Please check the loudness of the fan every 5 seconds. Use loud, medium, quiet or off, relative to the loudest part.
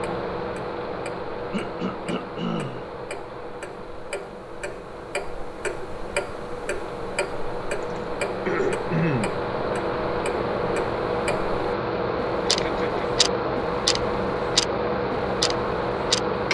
medium, medium, loud, loud.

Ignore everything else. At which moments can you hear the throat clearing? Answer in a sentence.
You can hear the throat clearing from 1.5 to 2.8 s, from 7.8 to 9.3 s and from 12.4 to 13.1 s.